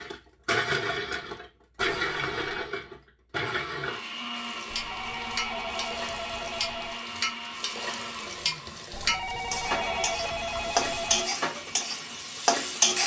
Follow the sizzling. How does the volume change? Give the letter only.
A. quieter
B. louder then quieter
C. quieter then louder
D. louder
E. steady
D.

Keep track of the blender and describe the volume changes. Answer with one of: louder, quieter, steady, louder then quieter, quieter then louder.
quieter.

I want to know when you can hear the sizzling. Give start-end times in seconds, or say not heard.
4.3-13.0.